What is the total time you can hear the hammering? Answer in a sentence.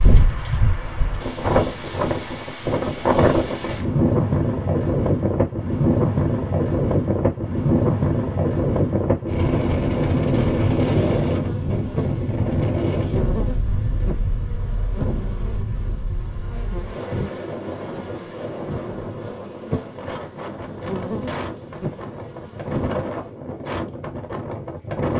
The hammering can't be heard in this clip.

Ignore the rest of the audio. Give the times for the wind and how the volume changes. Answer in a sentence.
You can hear the wind from 0.0 to 25.1 s, getting quieter.